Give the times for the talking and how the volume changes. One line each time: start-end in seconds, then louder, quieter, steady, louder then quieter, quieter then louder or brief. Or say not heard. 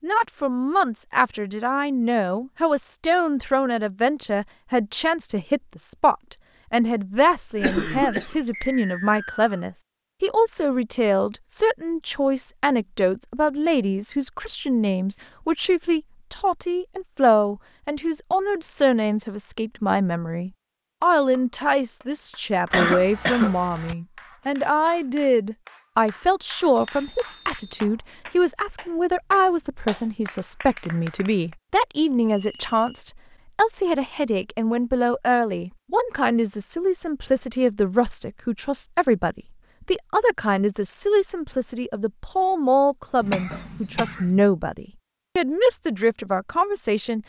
0.0-47.2 steady.